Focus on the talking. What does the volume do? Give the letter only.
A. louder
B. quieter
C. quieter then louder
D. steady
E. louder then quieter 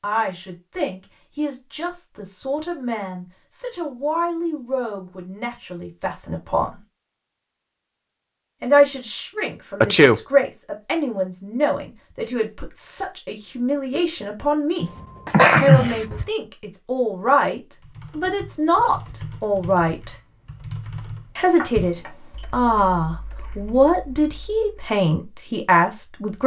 A.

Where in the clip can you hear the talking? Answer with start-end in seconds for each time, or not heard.
0.0-6.8, 8.6-14.8, 15.6-20.1, 21.4-26.4.